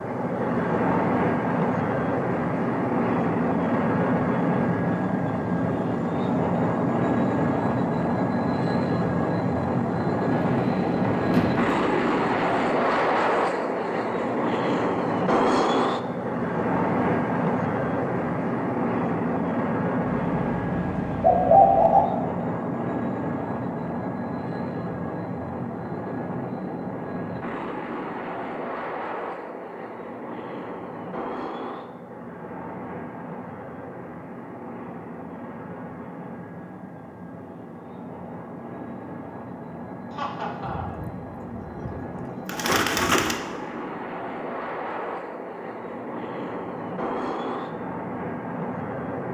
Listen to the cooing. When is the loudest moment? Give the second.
22 s.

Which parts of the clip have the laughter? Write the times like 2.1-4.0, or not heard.
40.1-41.0.